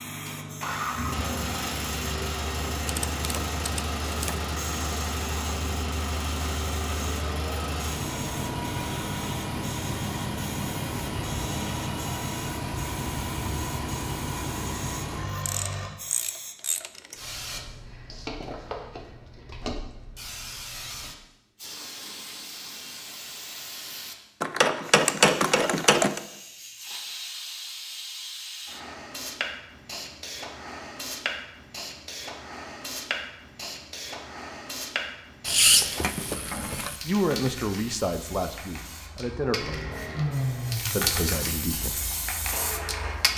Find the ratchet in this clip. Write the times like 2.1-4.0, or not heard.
2.9-4.5, 15.4-17.2, 24.4-26.2, 35.5-37.0.